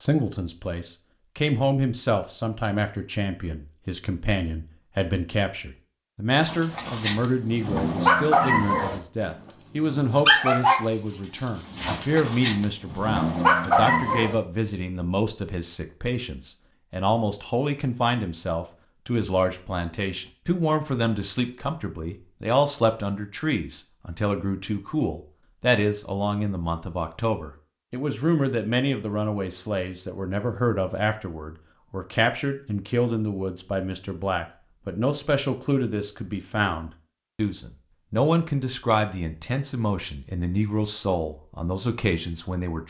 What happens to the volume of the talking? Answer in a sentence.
The loudness of the talking stays about the same.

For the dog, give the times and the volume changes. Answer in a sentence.
You can hear the dog from 6.4 to 14.4 s, getting quieter then louder.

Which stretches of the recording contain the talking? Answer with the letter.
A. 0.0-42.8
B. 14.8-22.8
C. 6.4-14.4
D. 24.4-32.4
A.